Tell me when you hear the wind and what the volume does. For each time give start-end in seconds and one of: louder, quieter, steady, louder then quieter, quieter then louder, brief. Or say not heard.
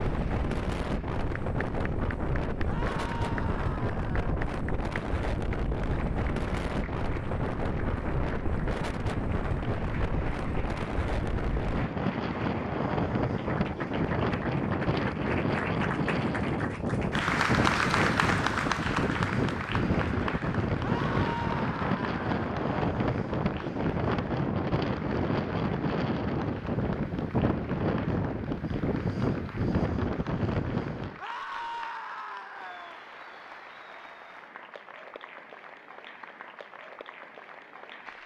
0.0-31.2 steady.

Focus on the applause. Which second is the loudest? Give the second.
18 s.